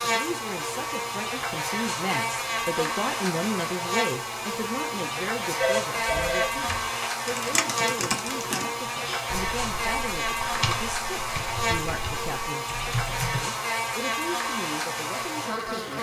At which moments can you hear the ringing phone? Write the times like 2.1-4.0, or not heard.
5.6-7.1.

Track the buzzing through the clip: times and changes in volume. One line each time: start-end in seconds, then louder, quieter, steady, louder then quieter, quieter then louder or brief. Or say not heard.
0.0-15.9 steady.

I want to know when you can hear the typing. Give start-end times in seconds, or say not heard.
6.0-13.5.